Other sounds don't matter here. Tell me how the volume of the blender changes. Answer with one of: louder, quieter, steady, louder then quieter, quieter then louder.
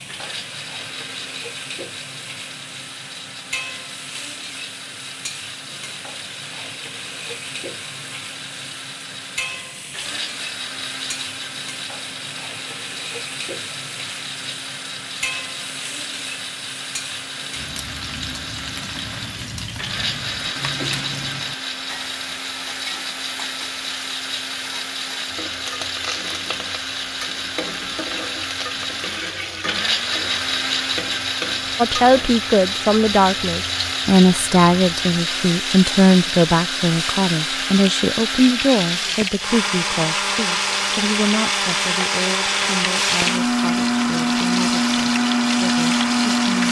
louder.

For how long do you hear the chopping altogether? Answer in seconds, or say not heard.
not heard.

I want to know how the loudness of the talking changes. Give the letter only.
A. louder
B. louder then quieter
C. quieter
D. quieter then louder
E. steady
C.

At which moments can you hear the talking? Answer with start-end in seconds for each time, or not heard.
31.8-46.6.